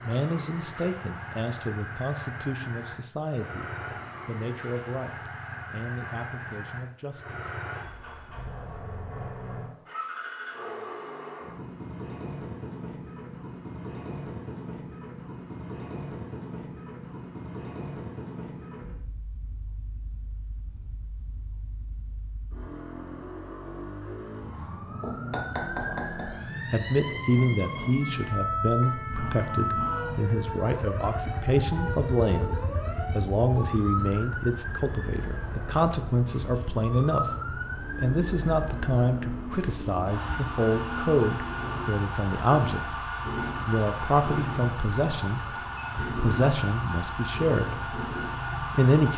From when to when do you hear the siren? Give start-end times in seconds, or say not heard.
24.4-49.1.